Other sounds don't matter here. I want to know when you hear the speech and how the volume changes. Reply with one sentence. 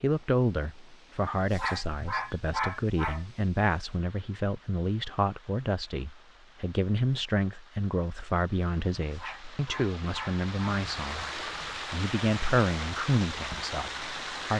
The speech can be heard from 0.0 to 14.5 s, at a steady volume.